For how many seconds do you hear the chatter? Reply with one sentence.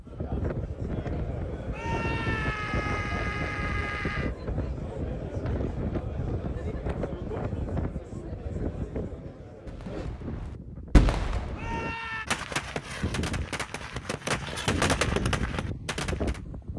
You can hear the chatter for 10 seconds altogether.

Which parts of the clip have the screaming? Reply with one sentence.
You can hear the screaming from 1.7 to 4.3 s and from 11.6 to 12.3 s.